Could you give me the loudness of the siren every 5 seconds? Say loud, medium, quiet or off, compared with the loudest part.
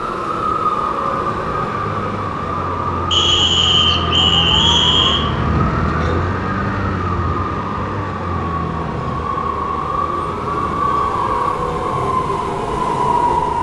loud, loud, medium.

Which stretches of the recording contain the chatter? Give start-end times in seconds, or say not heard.
not heard.